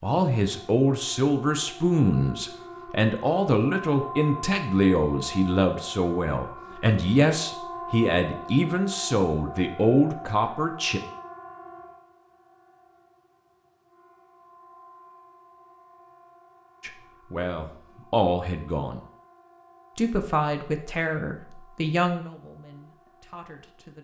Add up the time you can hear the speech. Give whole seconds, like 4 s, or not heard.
17 s.